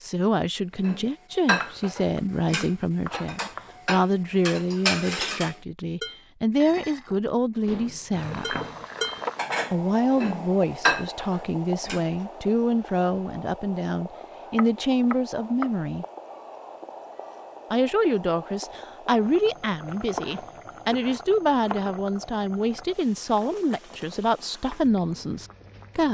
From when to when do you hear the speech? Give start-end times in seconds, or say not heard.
0.0-8.6, 9.7-16.1, 17.7-26.0.